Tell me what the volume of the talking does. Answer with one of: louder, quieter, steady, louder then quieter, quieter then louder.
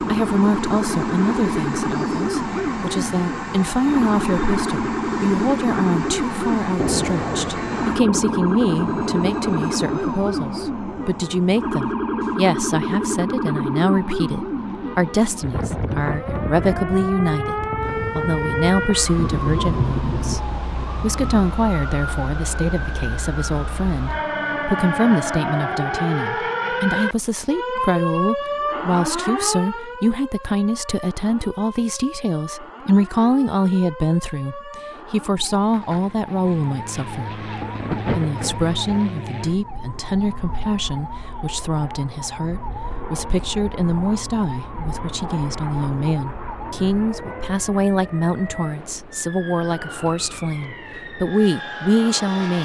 steady.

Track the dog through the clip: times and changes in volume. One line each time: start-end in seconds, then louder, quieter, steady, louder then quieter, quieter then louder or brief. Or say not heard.
not heard.